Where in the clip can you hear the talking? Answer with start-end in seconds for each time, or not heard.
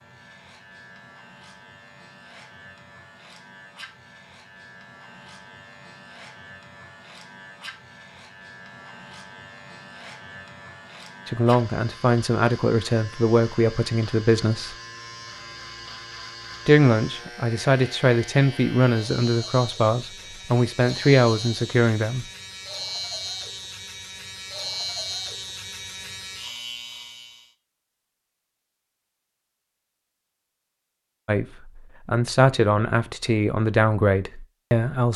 11.2-14.8, 16.6-22.2, 31.2-35.1.